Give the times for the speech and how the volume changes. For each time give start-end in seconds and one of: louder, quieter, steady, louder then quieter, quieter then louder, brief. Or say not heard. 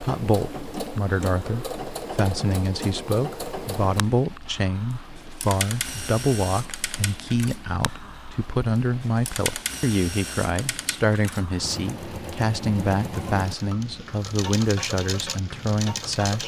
0.0-16.4 steady.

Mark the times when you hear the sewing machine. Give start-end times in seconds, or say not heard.
0.0-16.4.